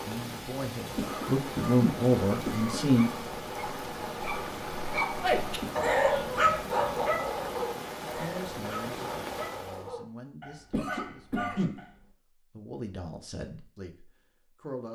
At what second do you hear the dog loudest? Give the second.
6 s.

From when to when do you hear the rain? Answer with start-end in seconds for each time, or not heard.
0.0-9.9.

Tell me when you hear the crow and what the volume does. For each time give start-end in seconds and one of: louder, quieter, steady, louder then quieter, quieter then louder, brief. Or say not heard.
not heard.